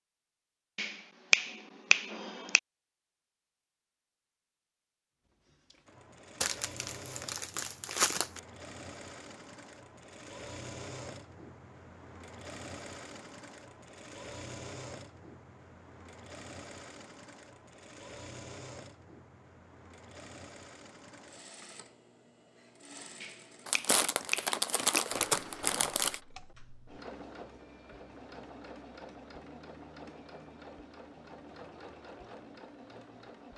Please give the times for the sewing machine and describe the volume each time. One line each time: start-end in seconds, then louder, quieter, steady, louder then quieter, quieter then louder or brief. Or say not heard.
5.5-33.5 steady.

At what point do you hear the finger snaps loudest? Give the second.
1 s.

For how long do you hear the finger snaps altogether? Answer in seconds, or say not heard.
4 s.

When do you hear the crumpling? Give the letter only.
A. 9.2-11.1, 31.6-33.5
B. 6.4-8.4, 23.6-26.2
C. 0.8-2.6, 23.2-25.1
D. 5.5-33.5
B.